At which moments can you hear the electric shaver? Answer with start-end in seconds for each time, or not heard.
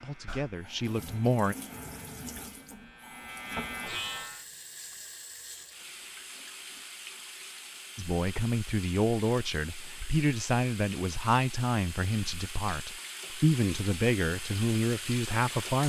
0.0-4.5.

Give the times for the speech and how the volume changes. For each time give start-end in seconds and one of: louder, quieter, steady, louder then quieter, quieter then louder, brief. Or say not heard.
0.0-1.6 brief
8.0-15.8 steady.